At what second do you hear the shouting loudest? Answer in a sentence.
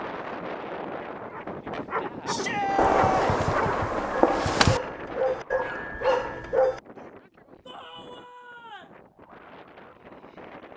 The volume of the shouting peaks at 3 seconds.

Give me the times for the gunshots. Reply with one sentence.
You can hear the gunshots from 2.8 to 4.8 s.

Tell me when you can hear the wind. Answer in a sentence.
You can hear the wind from 0.0 to 10.7 s.